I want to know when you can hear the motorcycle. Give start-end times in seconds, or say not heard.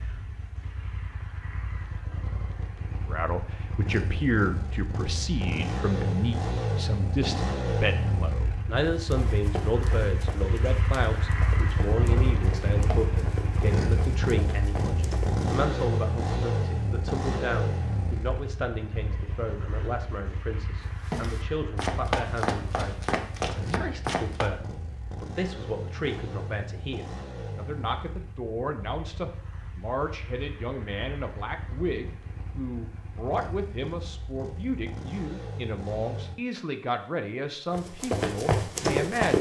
0.0-36.4.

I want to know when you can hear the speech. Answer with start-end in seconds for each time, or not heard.
3.1-39.3.